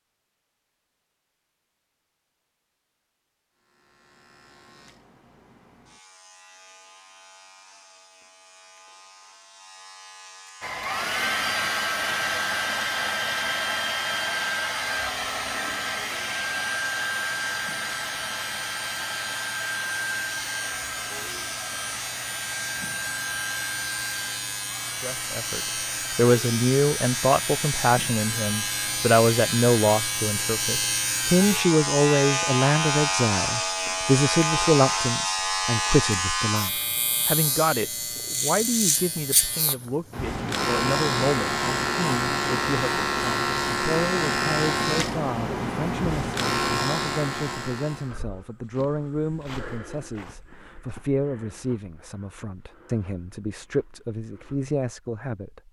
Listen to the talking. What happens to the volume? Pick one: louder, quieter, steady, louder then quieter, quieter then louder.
quieter.